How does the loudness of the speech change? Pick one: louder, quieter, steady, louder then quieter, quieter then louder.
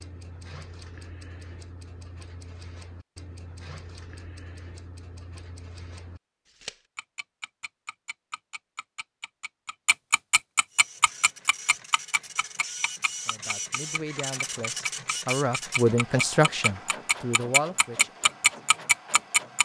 louder then quieter.